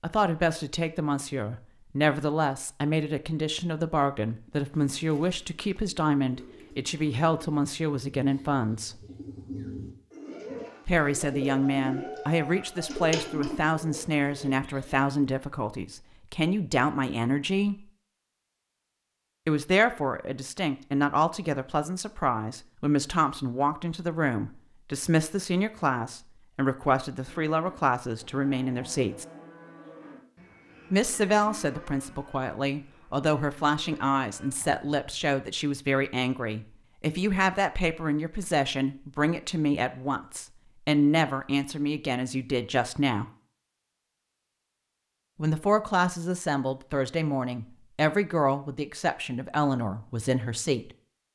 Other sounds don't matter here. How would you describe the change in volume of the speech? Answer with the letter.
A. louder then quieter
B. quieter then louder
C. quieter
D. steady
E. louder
D.